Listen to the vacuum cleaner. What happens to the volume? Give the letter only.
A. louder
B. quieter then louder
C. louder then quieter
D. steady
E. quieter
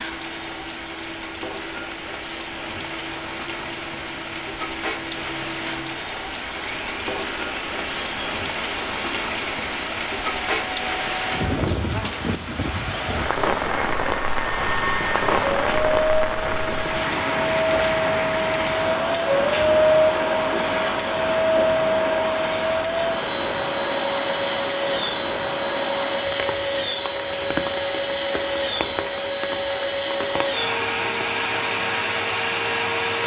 A.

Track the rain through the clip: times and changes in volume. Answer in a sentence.
You can hear the rain from 0.0 to 33.2 s, getting louder then quieter.